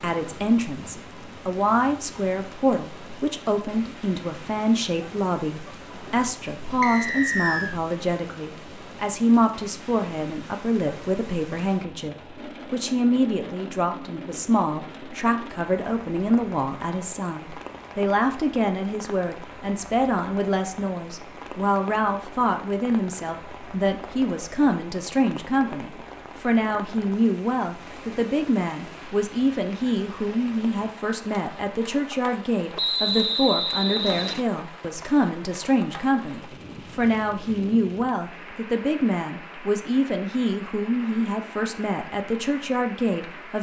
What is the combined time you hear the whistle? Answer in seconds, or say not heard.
3 s.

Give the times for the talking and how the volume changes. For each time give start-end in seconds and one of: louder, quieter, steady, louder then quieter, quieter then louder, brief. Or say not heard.
0.0-43.5 steady.